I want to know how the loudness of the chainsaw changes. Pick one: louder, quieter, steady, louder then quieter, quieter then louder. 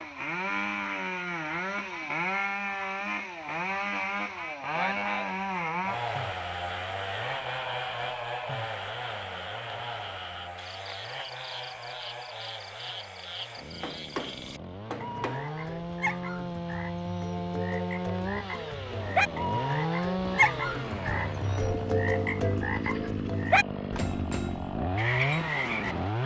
quieter then louder.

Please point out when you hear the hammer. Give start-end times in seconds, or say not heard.
13.4-15.9.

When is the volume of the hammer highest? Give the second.
14 s.